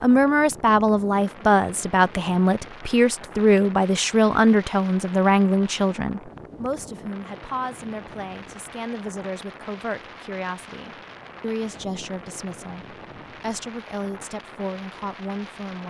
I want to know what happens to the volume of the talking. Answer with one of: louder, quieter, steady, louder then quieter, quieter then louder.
quieter.